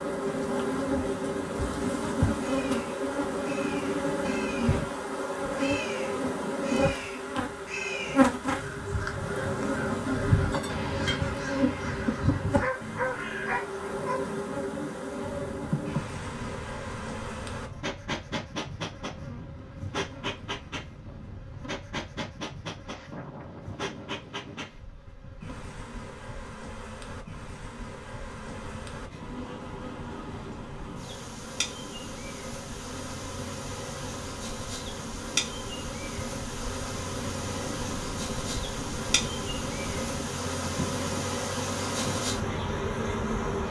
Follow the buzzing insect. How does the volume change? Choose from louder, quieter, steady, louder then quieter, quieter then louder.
quieter then louder.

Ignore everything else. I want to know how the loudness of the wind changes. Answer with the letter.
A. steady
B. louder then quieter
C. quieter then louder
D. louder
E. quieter
D.